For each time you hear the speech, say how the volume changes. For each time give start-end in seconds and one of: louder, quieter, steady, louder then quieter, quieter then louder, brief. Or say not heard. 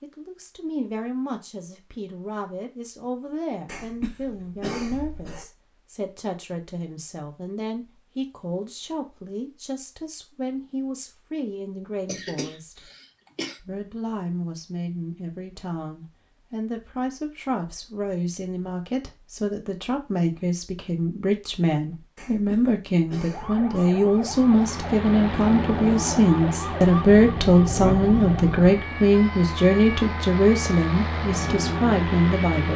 0.0-12.9 steady
13.6-32.7 louder.